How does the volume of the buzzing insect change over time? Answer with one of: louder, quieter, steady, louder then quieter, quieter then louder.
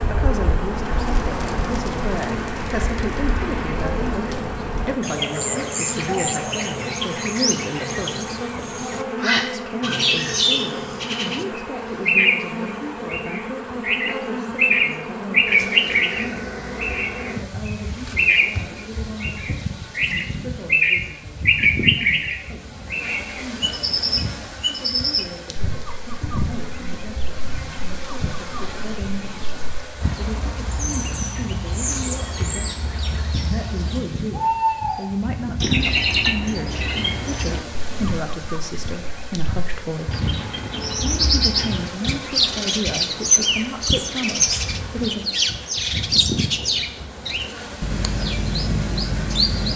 steady.